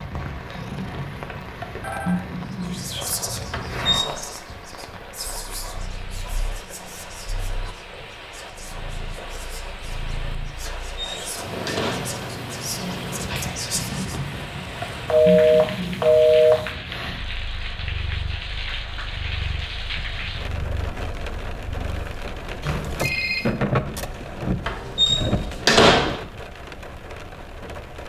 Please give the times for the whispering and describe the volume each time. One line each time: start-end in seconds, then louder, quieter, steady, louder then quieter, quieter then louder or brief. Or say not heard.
2.6-14.2 quieter then louder.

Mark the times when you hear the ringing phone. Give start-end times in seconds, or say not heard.
0.1-2.2, 15.1-16.7, 22.6-23.5.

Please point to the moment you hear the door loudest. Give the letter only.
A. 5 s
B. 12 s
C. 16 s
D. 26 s
D.